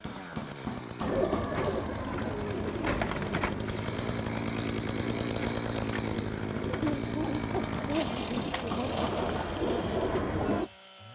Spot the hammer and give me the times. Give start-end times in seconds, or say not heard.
0.0-1.9, 7.7-9.6.